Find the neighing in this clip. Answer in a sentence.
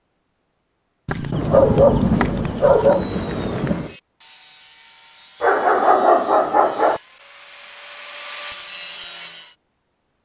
You can't hear the neighing here.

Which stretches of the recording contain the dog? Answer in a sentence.
The dog can be heard from 1.1 to 3.0 s and from 5.4 to 7.0 s.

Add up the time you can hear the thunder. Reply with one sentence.
The thunder can be heard for 3 seconds in total.